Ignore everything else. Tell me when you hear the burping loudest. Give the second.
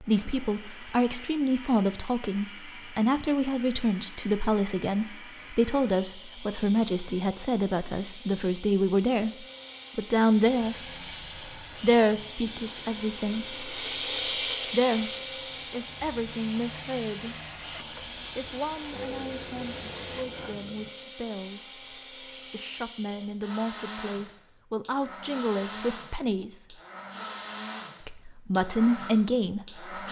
19 s.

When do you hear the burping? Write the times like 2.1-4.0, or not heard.
18.9-20.9.